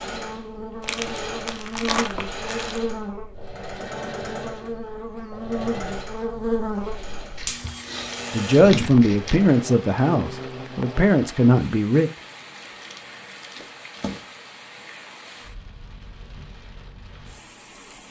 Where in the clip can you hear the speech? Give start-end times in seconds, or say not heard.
8.3-12.1.